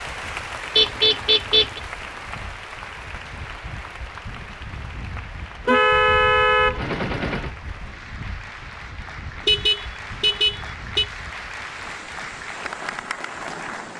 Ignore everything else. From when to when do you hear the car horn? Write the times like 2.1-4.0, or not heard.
0.8-1.8, 5.7-7.5, 9.3-11.1.